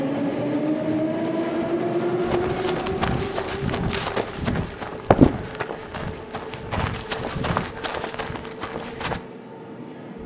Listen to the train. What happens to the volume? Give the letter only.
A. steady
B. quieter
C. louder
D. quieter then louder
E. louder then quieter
B.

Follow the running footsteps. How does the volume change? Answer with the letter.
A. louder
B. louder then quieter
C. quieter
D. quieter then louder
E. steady
B.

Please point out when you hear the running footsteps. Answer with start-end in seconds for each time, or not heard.
0.3-9.2.